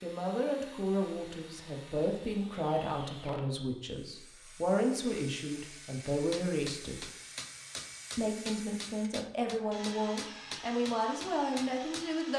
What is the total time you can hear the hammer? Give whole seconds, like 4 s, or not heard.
6 s.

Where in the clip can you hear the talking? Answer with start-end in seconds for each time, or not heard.
0.0-7.0, 8.2-12.3.